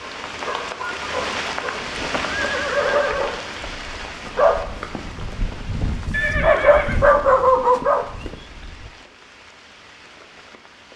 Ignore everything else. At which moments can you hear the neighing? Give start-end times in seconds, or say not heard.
1.7-3.4, 6.1-7.0.